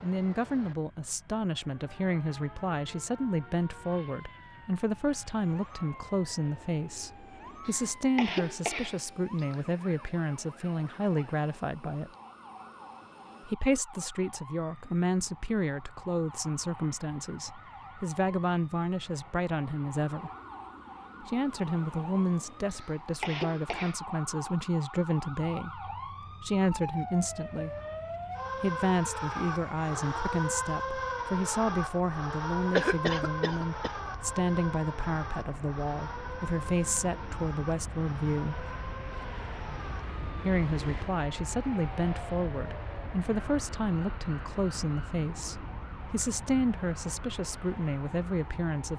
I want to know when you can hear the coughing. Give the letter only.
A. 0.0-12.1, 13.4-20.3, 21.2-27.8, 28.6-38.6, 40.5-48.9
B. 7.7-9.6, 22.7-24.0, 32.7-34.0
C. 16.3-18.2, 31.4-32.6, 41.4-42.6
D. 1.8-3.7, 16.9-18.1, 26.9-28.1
B.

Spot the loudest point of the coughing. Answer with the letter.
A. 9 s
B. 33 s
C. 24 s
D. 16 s
B.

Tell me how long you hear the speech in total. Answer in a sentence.
The speech can be heard for 44 seconds in total.